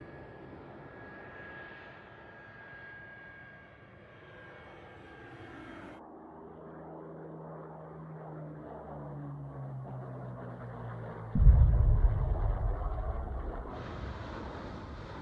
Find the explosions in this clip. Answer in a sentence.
You can hear the explosions from 11.3 to 13.5 s.